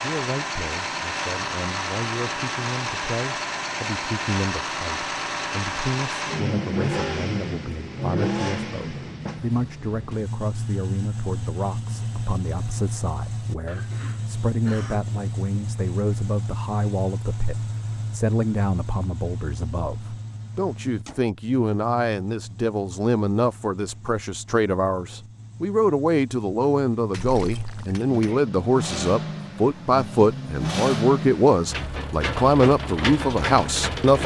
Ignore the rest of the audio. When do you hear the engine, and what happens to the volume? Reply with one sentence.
The engine can be heard from 0.0 to 34.2 s, getting quieter then louder.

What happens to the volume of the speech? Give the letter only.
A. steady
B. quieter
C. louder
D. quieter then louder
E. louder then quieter
C.